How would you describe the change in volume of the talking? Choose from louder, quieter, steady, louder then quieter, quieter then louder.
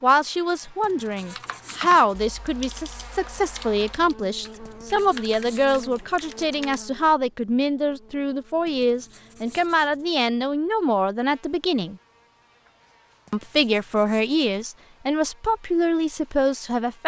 steady.